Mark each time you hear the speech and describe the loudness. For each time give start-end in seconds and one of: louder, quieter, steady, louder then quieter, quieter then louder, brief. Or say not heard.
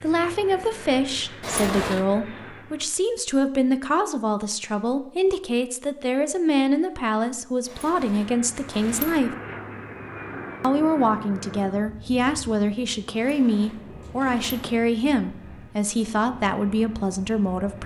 0.0-9.3 steady
10.6-17.8 steady.